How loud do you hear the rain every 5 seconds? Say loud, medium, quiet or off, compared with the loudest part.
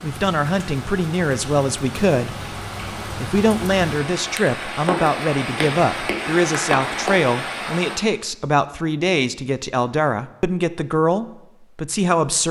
medium, loud, off.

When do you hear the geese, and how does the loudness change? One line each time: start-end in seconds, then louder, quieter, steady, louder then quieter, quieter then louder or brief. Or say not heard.
not heard.